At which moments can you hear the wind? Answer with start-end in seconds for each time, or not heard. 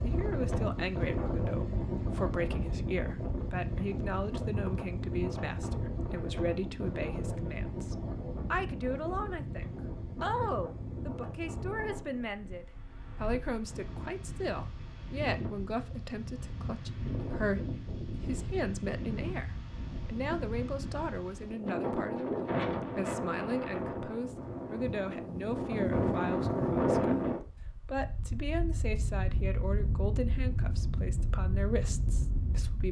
0.0-32.8.